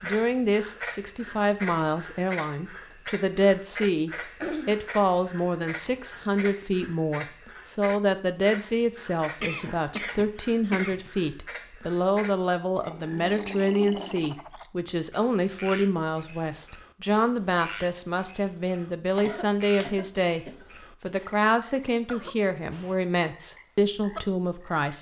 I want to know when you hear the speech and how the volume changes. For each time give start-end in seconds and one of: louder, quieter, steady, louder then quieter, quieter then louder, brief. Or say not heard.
0.0-24.9 steady.